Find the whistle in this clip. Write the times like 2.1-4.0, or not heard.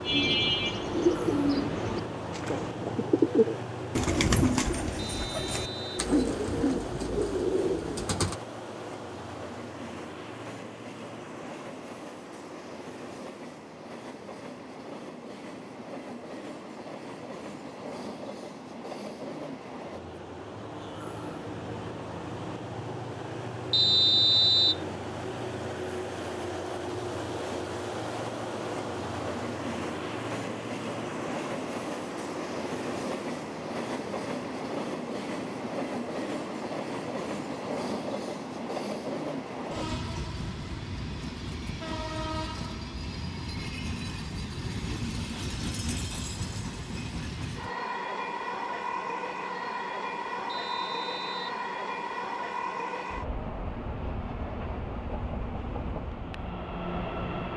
5.0-6.0, 23.7-24.9, 50.5-51.6.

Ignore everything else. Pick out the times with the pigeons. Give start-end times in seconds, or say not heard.
0.0-8.3.